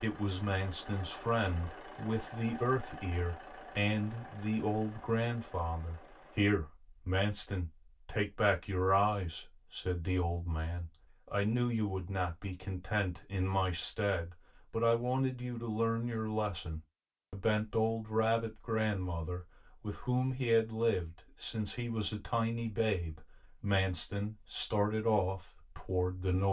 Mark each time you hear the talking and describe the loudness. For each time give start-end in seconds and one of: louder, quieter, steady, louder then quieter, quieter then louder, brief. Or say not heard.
0.0-26.4 steady.